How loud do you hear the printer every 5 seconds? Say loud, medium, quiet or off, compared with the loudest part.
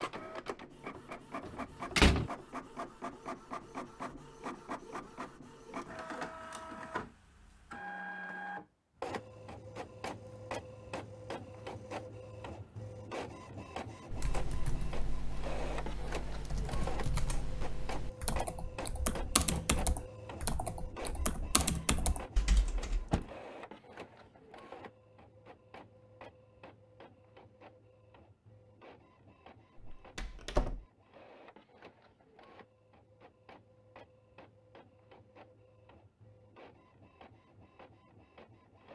loud, loud, loud, loud, medium, quiet, quiet, quiet.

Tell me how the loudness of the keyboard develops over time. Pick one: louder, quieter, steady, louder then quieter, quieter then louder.
louder.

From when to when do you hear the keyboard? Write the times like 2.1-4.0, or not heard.
14.1-23.1.